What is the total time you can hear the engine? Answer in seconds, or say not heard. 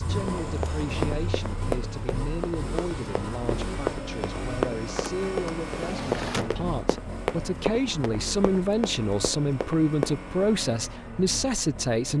12 s.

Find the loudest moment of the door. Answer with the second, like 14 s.
6 s.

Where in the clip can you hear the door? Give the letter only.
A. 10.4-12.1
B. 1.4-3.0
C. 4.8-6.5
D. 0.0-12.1
C.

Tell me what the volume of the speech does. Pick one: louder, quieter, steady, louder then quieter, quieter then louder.
louder.